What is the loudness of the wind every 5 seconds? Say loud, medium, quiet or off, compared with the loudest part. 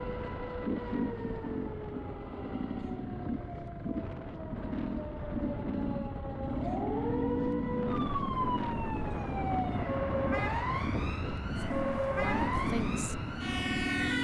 medium, loud, loud.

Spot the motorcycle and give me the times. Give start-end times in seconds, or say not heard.
0.0-14.1.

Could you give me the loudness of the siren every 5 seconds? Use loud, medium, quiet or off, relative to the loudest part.
medium, loud, loud.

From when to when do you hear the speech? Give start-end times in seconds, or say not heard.
12.1-13.2.